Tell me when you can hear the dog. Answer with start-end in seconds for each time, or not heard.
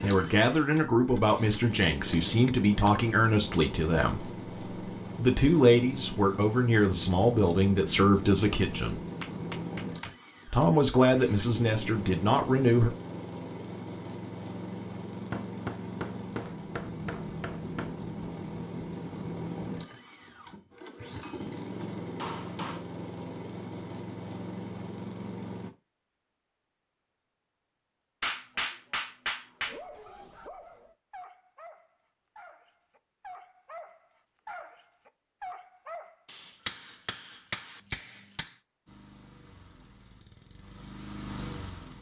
29.4-36.1.